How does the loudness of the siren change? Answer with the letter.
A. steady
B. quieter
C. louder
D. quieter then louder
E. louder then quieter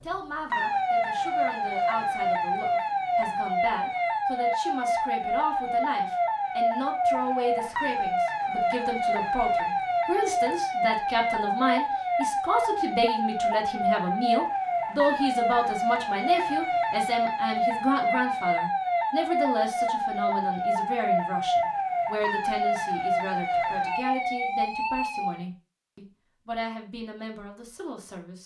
A.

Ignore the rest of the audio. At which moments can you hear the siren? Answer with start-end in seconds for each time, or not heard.
0.0-25.4.